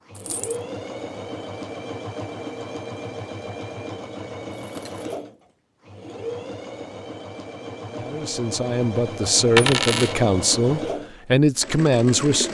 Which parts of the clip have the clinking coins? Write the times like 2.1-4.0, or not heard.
0.1-0.6, 4.5-5.1, 9.6-10.2.